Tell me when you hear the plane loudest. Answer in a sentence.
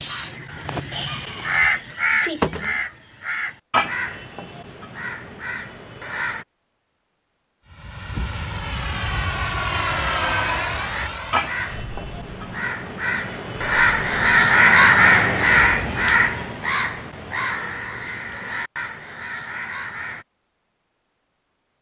The loudest moment of the plane is at 10 seconds.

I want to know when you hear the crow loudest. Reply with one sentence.
The volume of the crow peaks at 15 seconds.